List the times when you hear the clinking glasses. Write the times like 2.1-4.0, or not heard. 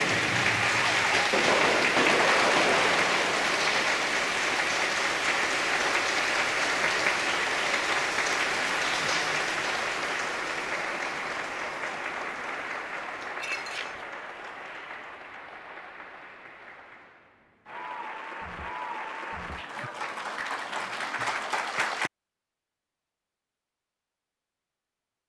13.2-14.1.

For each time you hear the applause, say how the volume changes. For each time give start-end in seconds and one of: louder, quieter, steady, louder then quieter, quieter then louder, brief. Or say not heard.
0.0-22.1 quieter then louder.